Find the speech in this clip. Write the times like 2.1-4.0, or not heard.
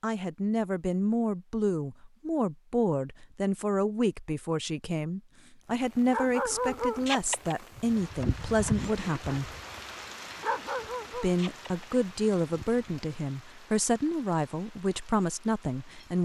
0.0-9.5, 11.1-16.1.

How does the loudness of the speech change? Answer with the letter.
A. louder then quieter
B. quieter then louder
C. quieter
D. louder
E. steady
E.